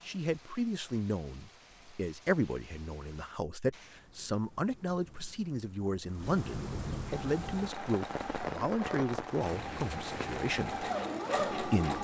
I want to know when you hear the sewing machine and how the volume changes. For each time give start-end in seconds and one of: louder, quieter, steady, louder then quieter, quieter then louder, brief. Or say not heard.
7.1-11.9 louder.